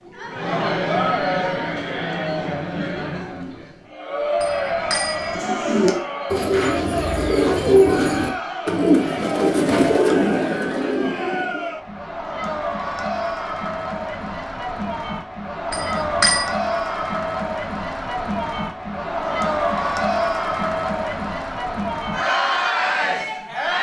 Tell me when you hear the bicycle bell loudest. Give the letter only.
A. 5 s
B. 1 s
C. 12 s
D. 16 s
D.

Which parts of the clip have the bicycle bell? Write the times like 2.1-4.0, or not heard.
4.4-5.3, 15.7-16.5.